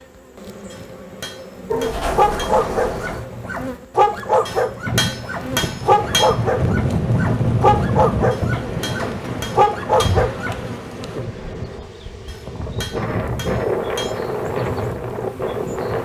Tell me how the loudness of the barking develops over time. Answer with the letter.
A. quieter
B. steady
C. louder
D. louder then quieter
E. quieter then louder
B.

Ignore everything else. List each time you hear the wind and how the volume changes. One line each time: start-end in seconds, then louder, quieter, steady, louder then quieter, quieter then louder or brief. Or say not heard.
4.8-16.0 quieter then louder.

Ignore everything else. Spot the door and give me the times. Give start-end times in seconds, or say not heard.
1.8-3.2, 9.1-10.4.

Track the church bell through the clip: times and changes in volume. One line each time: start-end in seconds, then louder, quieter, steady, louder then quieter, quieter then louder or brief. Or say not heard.
not heard.